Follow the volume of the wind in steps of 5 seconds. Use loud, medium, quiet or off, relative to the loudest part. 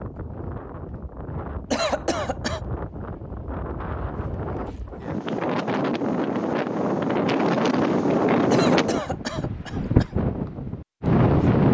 quiet, loud, loud.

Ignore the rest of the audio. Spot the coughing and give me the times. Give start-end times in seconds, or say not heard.
1.7-2.6, 8.5-10.1.